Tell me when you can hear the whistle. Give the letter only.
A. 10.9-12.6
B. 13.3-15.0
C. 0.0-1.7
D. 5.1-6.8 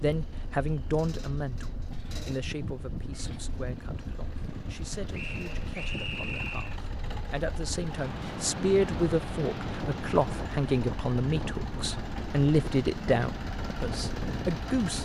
D.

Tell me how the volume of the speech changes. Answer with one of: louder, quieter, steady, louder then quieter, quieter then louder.
quieter then louder.